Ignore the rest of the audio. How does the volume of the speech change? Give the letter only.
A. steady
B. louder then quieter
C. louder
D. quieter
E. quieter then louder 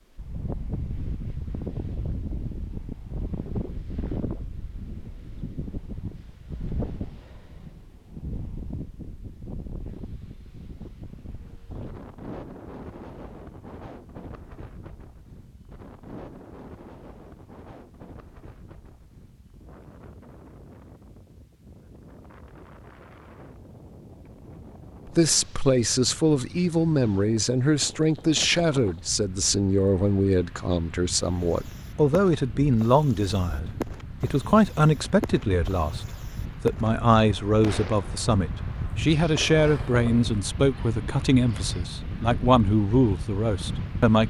A.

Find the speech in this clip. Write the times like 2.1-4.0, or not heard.
25.1-44.2.